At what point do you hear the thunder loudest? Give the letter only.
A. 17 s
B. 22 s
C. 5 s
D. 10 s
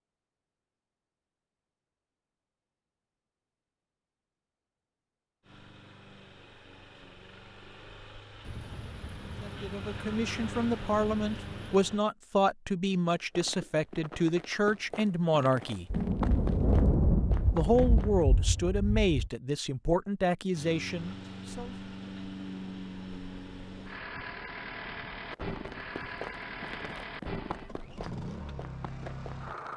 A.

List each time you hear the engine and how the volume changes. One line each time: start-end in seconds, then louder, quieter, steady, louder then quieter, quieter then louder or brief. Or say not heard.
5.4-12.1 louder
20.5-29.7 steady.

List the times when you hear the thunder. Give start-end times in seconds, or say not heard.
8.4-11.8, 15.9-19.3.